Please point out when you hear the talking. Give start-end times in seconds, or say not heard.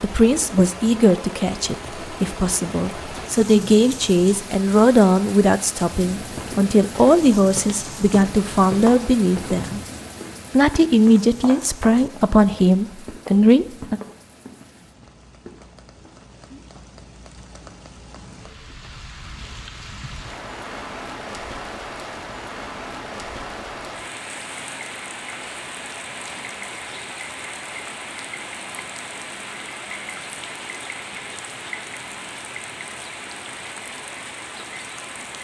0.0-9.8, 10.5-14.0.